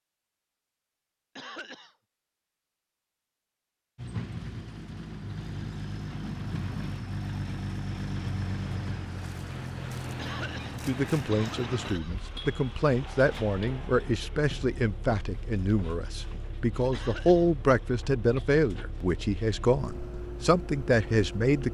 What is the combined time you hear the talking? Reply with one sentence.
The talking can be heard for 11 seconds in total.